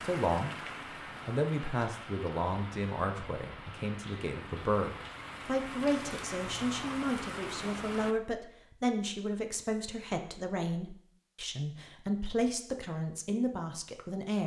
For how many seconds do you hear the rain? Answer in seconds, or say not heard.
8 s.